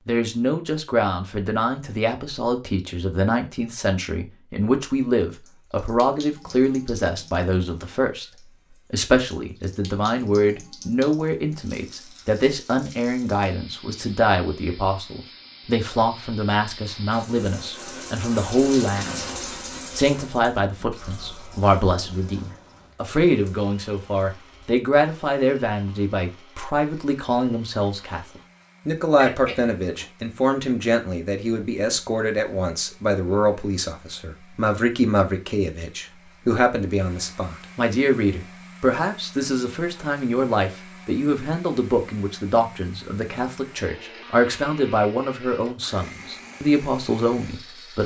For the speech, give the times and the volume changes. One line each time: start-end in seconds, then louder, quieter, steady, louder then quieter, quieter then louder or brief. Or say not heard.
0.1-19.2 steady
19.9-48.0 steady.